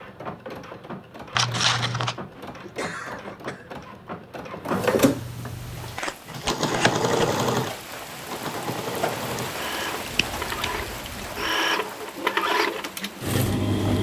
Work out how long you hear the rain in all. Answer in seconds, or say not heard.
8 s.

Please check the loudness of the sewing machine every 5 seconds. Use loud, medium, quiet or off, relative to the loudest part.
medium, loud, loud.